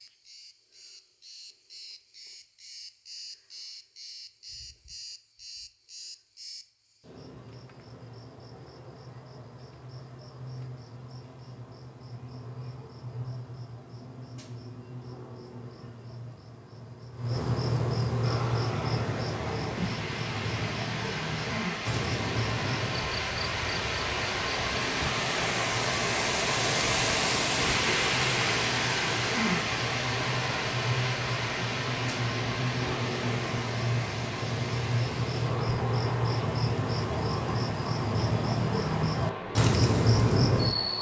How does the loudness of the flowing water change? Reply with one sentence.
The volume of the flowing water goes up, then down.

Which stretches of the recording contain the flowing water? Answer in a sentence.
You can hear the flowing water from 18.2 to 40.9 s.